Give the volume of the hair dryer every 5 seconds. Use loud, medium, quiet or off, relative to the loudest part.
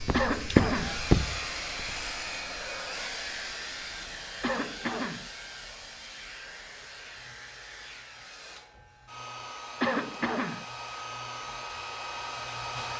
loud, medium, loud.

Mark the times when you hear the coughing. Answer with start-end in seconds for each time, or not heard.
0.1-1.0, 4.4-5.3, 9.8-10.7.